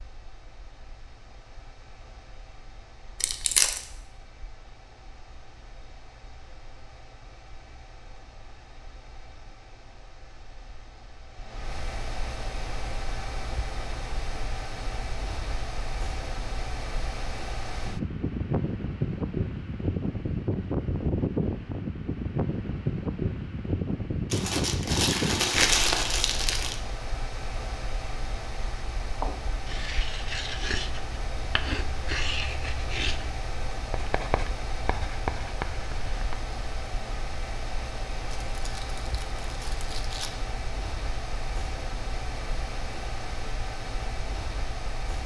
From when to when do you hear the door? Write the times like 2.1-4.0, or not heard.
not heard.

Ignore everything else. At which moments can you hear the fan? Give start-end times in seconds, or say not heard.
0.0-45.2.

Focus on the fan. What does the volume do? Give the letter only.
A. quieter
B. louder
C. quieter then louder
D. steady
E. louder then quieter
E.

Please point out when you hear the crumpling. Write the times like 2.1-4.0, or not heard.
3.2-3.8, 24.3-26.8, 38.4-40.3.